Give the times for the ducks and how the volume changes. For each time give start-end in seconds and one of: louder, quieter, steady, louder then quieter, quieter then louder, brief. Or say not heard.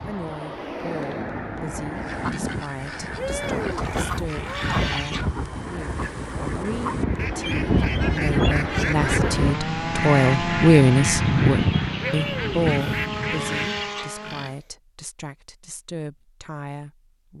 1.9-13.9 louder.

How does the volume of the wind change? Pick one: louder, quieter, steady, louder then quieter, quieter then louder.
louder.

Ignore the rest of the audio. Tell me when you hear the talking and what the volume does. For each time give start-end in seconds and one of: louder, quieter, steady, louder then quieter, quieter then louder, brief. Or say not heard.
0.1-17.3 louder then quieter.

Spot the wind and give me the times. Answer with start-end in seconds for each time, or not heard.
0.0-9.6.